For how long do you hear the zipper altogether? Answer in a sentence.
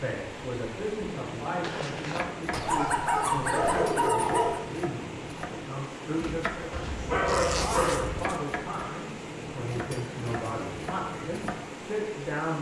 The zipper can be heard for 2 seconds in total.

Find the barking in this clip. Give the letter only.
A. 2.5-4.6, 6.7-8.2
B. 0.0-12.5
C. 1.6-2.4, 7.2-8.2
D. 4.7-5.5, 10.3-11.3
A.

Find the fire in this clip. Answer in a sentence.
You can't hear the fire here.